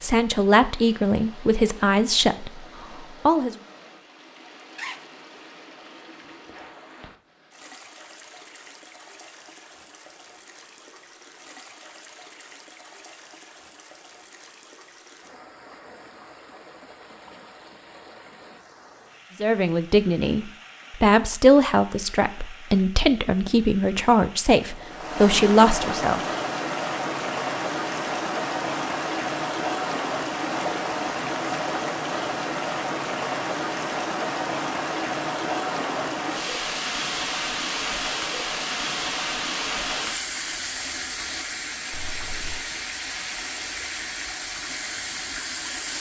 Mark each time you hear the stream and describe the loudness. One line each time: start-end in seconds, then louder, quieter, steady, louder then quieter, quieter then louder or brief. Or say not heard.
0.0-45.9 louder.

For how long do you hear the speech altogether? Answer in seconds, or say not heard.
10 s.